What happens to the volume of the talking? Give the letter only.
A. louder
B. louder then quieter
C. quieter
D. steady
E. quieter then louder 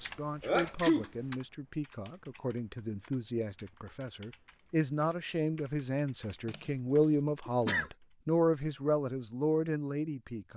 A.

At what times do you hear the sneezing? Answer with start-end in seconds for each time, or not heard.
0.4-1.1, 7.5-7.9.